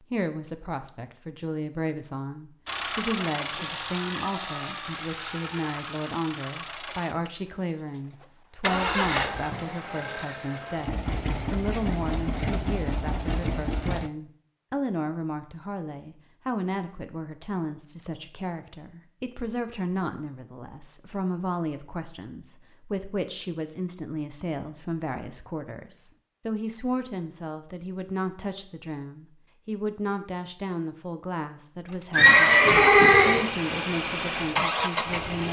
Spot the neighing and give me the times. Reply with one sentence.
The neighing can be heard from 8.7 to 9.6 s and from 32.1 to 33.5 s.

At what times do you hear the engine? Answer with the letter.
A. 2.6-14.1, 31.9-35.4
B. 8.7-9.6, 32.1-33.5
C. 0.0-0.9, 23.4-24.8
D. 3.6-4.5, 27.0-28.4
A.